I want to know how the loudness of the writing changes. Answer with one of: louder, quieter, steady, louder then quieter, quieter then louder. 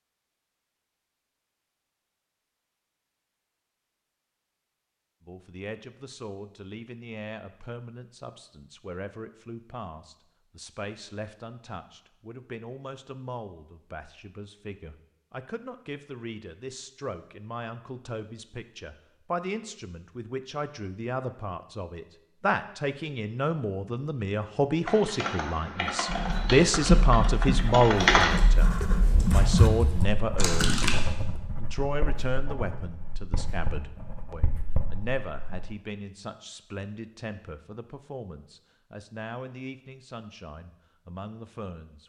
quieter.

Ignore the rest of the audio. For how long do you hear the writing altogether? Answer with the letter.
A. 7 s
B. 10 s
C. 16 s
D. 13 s
B.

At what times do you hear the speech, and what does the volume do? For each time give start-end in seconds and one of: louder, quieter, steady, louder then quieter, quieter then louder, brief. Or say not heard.
5.2-28.7 louder
29.3-30.9 brief
31.6-42.0 quieter.